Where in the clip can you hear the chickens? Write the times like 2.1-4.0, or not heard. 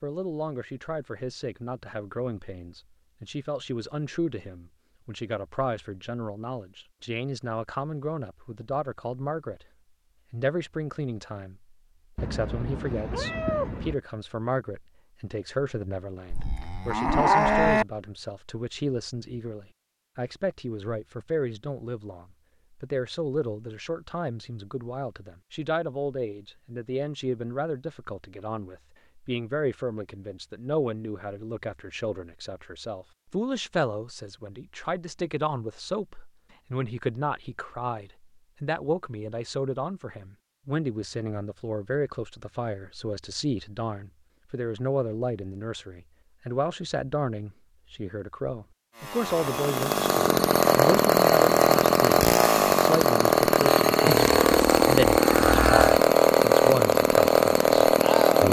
not heard.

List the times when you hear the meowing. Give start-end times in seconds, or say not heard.
12.2-13.9.